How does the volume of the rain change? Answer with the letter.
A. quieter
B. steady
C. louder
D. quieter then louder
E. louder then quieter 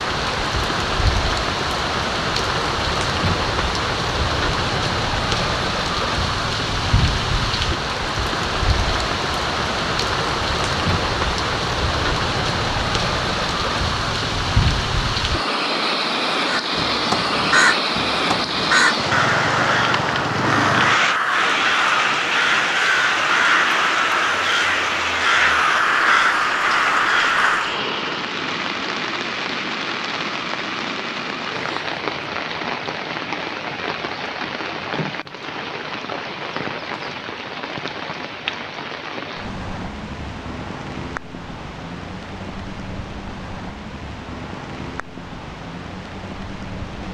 A.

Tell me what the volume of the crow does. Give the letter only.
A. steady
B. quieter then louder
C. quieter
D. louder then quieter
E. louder
A.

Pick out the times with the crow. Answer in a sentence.
You can hear the crow from 16.4 to 27.7 s.